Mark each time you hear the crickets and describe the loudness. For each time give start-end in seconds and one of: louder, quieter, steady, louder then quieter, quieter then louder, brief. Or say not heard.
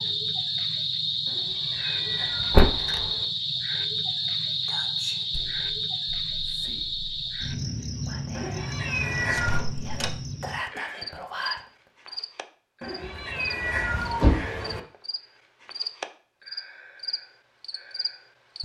0.0-18.6 quieter.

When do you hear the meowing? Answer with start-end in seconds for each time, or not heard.
1.2-3.3, 8.3-9.7, 12.8-14.8.